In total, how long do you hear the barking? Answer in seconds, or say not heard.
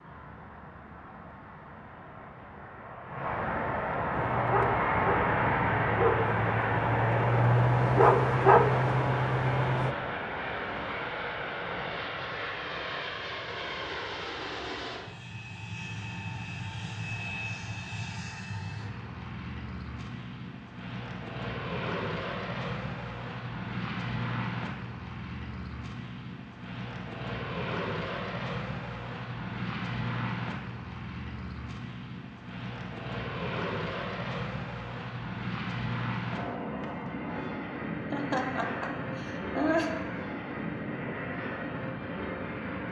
6 s.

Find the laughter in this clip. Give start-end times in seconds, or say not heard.
38.1-39.9.